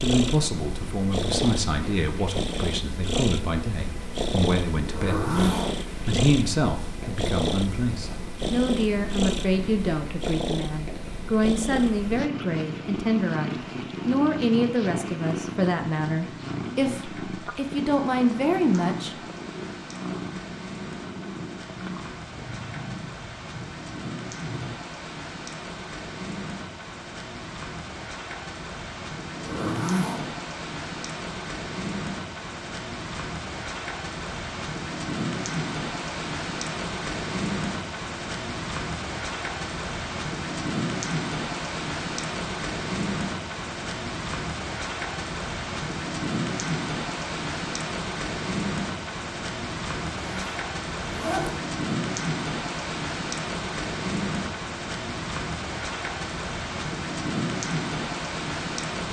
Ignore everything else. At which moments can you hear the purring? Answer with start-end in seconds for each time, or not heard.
0.0-24.8.